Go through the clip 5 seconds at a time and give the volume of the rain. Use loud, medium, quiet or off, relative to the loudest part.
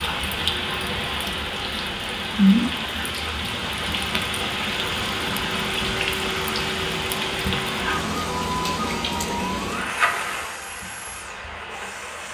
loud, loud, medium.